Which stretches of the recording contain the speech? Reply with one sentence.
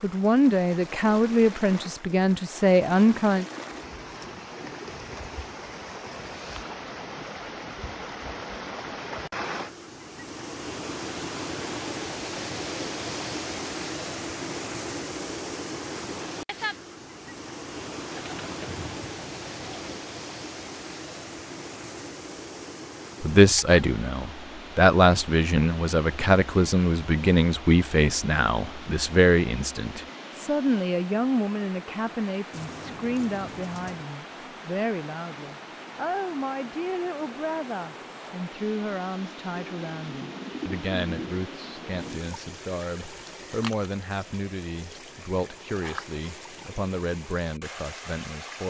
You can hear the speech from 0.0 to 3.5 s and from 23.2 to 48.6 s.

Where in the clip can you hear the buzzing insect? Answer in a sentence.
The buzzing insect can't be heard in this clip.